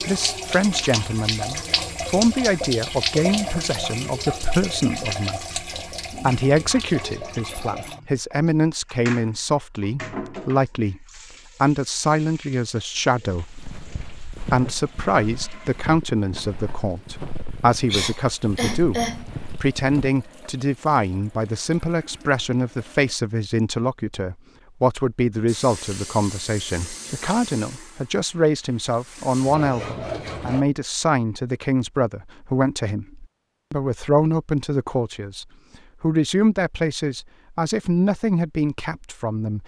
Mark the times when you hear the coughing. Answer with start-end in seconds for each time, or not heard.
17.9-19.2.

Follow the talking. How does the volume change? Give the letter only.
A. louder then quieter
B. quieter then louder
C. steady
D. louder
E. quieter
C.